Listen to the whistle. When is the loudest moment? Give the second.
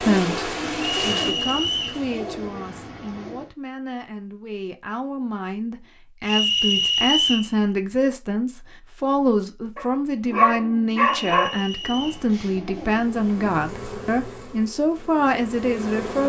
7 s.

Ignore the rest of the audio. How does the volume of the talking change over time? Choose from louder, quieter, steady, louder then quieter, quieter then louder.
louder.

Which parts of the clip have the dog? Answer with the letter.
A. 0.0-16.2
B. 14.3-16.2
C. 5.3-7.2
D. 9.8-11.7
D.